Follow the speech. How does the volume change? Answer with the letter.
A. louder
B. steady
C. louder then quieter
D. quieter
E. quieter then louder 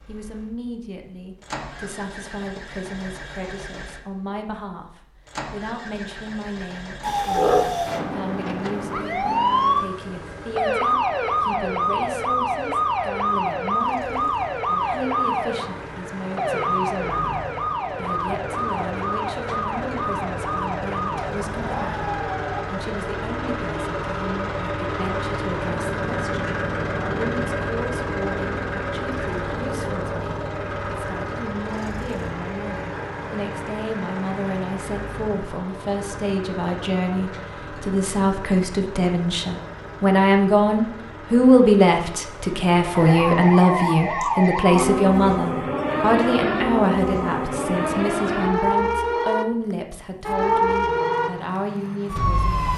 A.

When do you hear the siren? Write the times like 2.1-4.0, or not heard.
7.0-22.6, 43.0-52.7.